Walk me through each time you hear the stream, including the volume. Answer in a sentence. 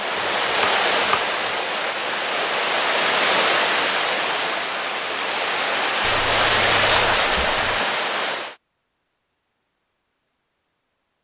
The stream can be heard from 0.0 to 8.6 s, at a steady volume.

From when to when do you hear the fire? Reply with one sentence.
You can't hear the fire here.